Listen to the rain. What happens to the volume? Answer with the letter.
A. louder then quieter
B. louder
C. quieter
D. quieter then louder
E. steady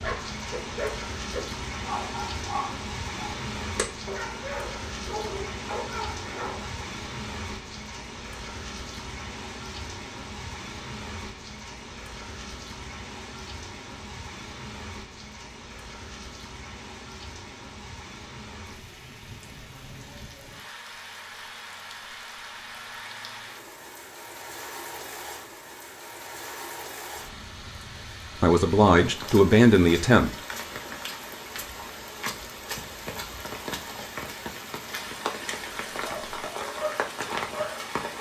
D.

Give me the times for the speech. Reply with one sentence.
You can hear the speech from 28.4 to 30.3 s.